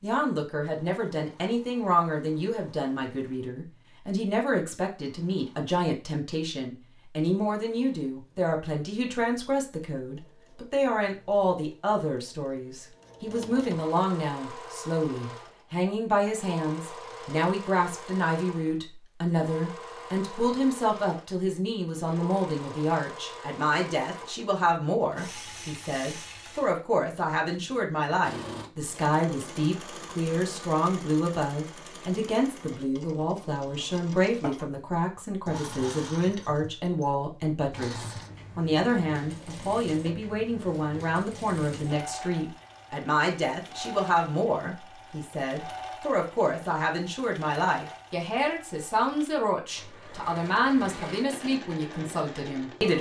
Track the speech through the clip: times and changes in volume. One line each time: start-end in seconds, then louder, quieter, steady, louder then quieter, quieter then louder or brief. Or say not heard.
0.0-52.9 steady.